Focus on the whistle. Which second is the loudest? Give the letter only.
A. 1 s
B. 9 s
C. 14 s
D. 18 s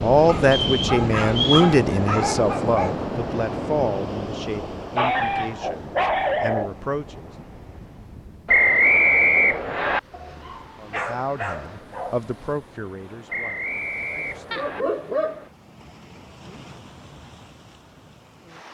B.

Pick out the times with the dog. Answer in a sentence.
You can hear the dog from 0.2 to 3.0 s, from 5.0 to 6.8 s, from 10.1 to 12.2 s and from 14.5 to 15.5 s.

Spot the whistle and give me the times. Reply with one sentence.
You can hear the whistle from 0.5 to 1.7 s, from 8.4 to 10.0 s and from 13.3 to 14.8 s.